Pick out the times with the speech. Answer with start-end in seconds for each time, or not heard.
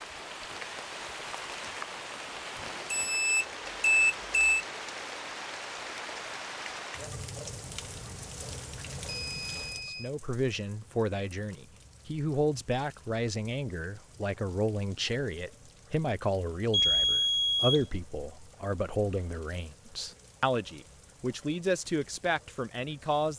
9.8-23.3.